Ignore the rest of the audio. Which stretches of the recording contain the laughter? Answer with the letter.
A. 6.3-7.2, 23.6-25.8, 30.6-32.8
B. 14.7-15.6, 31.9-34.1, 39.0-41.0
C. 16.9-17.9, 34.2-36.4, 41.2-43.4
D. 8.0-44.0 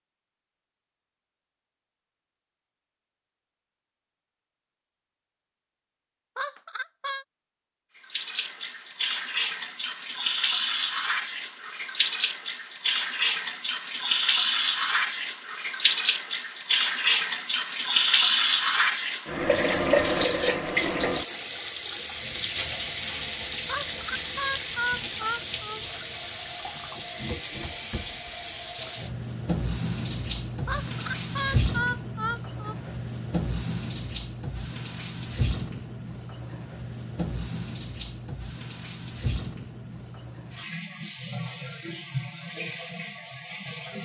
A.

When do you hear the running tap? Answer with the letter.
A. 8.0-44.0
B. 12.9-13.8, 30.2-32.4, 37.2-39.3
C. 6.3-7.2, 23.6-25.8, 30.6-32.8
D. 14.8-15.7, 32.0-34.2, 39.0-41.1
A.